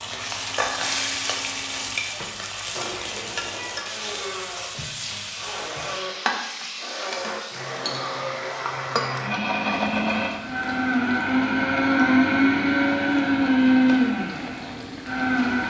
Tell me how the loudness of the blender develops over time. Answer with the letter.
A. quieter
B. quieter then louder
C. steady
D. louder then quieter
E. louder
E.